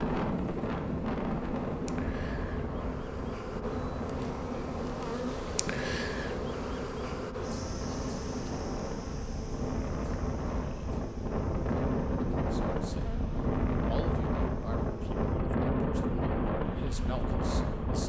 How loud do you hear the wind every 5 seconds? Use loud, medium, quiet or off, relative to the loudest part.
loud, medium, loud, loud.